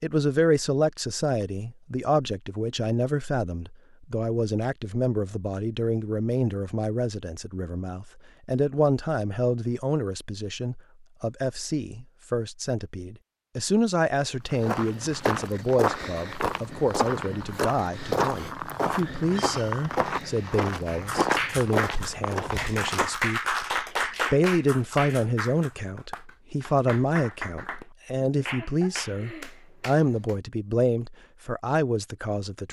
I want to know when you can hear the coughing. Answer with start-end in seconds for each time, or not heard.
not heard.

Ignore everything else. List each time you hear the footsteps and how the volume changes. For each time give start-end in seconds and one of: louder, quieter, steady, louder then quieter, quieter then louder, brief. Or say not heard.
14.4-23.1 steady.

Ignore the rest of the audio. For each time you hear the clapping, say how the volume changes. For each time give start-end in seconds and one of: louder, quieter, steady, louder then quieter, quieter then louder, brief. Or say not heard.
20.9-30.4 quieter.